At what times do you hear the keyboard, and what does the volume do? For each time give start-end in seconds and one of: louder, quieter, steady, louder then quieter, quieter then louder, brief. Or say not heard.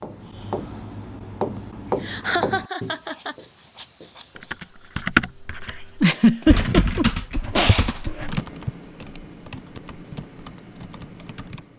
4.3-11.7 quieter.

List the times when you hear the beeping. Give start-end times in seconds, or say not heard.
not heard.